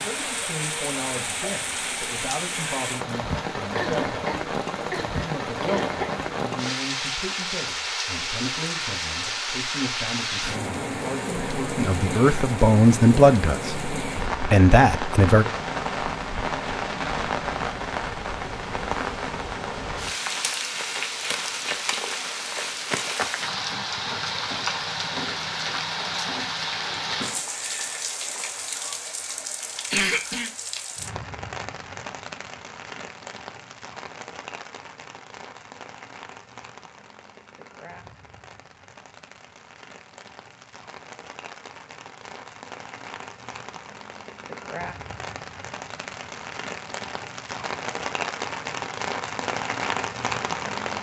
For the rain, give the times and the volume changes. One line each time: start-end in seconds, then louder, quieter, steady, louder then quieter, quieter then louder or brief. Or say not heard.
0.0-50.9 quieter then louder.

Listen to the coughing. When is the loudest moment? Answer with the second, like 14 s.
30 s.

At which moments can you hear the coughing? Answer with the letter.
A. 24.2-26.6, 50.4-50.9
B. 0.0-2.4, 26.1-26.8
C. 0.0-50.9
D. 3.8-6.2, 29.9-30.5
D.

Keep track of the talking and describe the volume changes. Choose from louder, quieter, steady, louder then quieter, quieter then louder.
louder.